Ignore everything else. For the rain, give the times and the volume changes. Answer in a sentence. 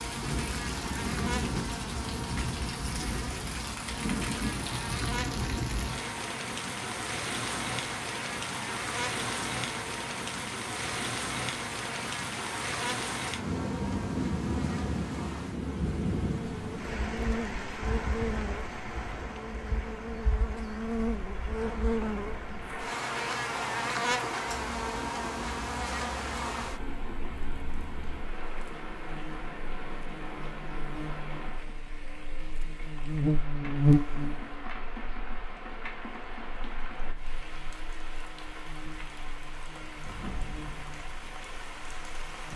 You can hear the rain from 0.0 to 42.5 s, getting quieter.